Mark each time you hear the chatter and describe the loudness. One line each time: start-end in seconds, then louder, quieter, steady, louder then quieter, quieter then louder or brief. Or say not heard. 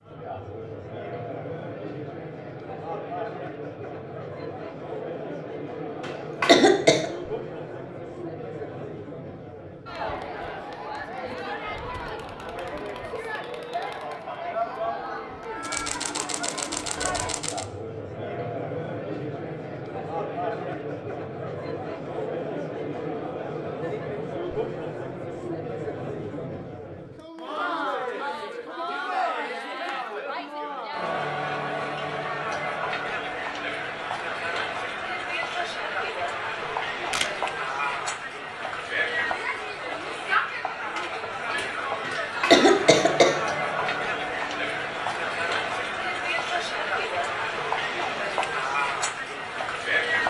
0.0-50.2 louder.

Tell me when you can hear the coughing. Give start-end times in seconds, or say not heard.
6.0-7.0, 42.0-43.4.